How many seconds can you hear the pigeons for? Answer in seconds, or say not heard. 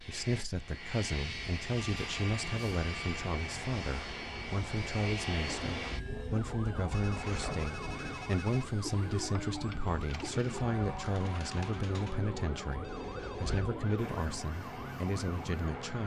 9 s.